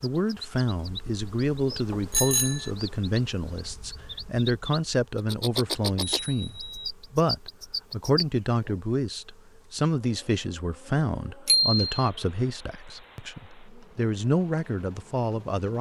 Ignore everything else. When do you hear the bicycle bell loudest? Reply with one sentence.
The volume of the bicycle bell peaks at 12 seconds.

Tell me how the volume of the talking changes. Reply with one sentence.
The loudness of the talking stays about the same.